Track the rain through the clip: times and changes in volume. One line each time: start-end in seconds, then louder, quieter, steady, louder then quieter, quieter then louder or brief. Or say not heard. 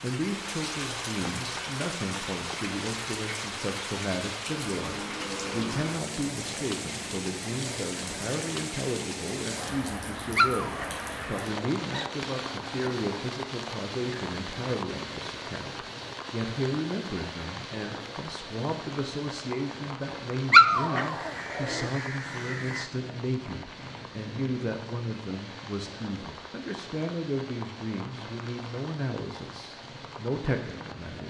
0.0-31.2 quieter.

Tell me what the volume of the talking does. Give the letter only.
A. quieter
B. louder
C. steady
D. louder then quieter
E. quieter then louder
C.